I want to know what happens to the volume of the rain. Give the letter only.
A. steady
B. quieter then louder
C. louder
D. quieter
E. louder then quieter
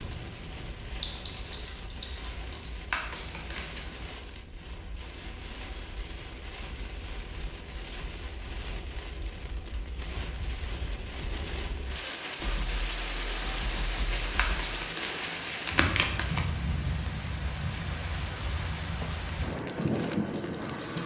C.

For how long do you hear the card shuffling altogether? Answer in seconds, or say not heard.
3 s.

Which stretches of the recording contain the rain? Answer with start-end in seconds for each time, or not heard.
0.0-21.0.